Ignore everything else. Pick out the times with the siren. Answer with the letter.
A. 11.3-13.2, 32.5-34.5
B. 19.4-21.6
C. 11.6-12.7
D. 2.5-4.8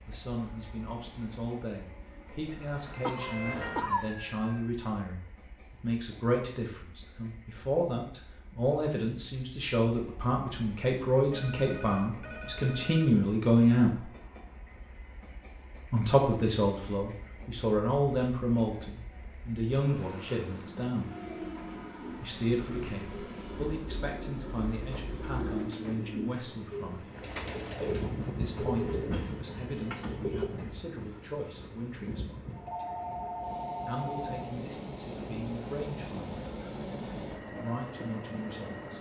D.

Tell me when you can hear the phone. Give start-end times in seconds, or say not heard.
11.3-13.2, 32.5-34.5.